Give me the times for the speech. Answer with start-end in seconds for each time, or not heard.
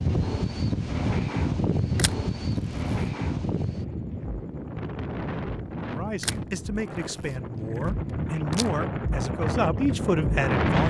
5.8-10.8.